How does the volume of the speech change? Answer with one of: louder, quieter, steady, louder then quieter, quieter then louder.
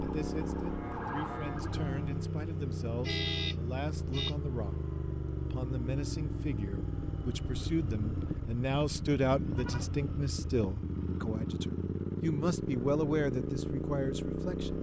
louder.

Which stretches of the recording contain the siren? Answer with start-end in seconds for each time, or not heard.
0.0-2.3.